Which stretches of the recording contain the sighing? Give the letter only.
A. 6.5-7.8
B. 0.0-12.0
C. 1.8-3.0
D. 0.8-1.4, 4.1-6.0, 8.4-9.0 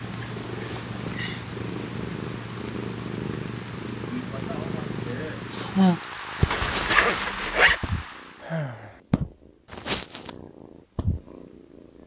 D.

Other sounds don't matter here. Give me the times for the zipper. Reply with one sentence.
The zipper can be heard from 6.5 to 7.8 s.